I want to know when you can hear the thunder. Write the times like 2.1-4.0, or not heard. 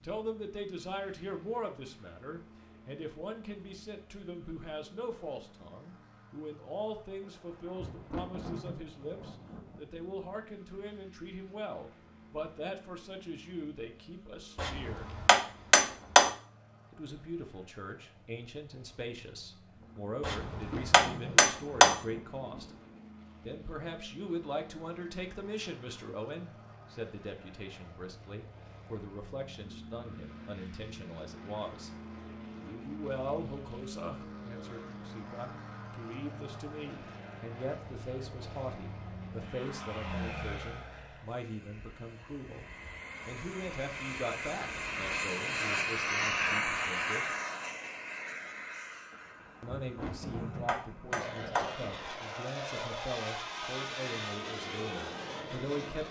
7.2-9.8, 19.8-23.0, 49.1-52.3.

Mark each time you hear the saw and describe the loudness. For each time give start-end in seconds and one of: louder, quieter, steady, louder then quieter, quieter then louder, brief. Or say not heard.
not heard.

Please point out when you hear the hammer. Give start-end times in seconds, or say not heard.
14.6-16.3, 20.2-21.9, 50.0-51.7.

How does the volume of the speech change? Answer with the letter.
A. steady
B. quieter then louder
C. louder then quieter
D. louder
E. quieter
A.